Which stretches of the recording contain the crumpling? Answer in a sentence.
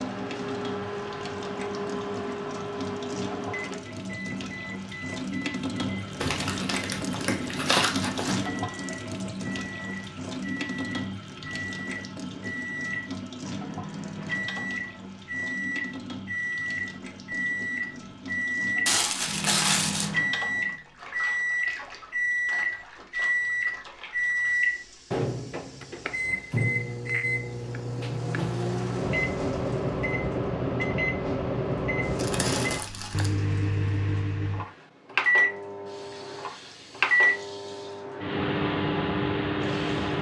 You can hear the crumpling from 6.2 to 8.5 s, from 18.9 to 20.1 s and from 32.1 to 33.3 s.